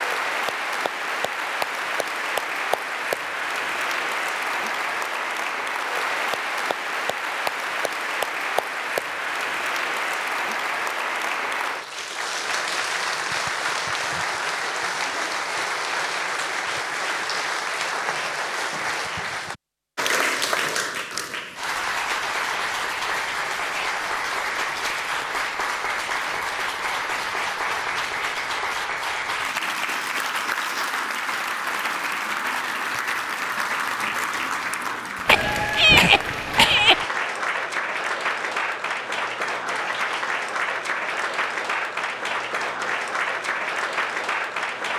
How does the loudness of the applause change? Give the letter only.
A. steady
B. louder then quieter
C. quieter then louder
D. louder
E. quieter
A.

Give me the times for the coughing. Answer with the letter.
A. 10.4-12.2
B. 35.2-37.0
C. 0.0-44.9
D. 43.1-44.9
B.